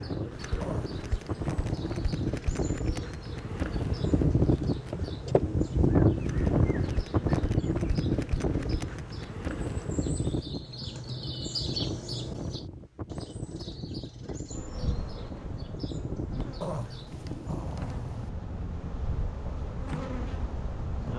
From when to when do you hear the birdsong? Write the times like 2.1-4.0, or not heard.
0.0-17.6.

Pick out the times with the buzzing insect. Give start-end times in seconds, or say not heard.
0.0-10.5, 14.5-21.1.